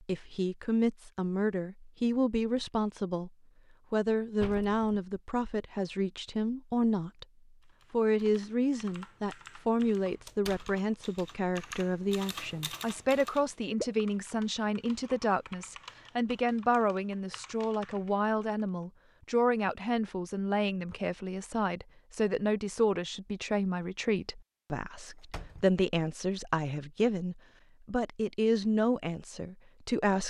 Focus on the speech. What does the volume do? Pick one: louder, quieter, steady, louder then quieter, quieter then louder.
steady.